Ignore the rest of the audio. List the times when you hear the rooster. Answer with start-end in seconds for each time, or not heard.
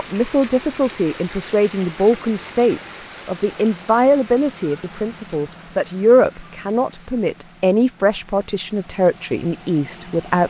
not heard.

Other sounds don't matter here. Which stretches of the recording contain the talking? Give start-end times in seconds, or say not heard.
0.0-10.4.